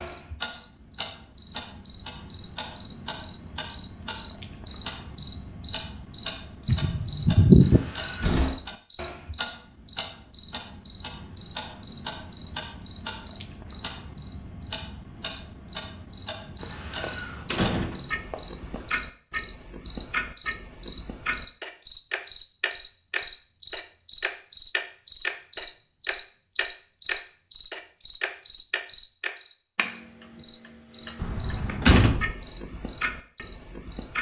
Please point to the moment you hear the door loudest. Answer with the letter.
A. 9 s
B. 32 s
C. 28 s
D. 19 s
B.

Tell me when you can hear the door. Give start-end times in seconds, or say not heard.
8.0-8.6, 16.6-18.9, 31.2-32.4.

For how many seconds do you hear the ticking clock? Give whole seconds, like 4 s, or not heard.
34 s.